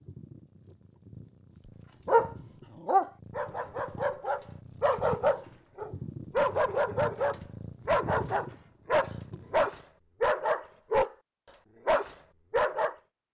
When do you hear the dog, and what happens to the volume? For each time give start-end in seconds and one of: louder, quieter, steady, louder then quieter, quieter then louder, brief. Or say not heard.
2.0-11.1 steady
11.8-12.9 brief.